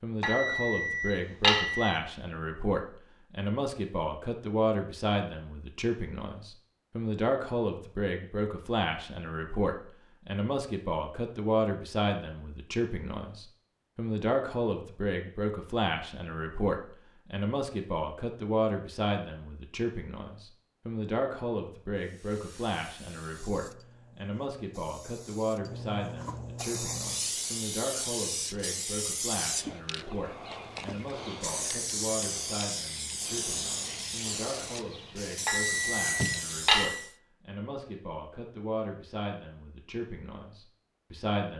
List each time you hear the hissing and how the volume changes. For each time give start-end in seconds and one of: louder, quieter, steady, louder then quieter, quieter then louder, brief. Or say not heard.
21.9-37.1 louder.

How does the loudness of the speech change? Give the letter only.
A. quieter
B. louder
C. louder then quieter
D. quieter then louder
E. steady
A.